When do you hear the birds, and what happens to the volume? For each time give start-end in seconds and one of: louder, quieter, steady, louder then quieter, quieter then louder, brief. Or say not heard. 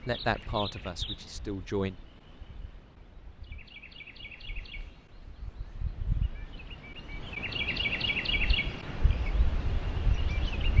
0.0-10.7 quieter then louder.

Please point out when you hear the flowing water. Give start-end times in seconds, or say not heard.
not heard.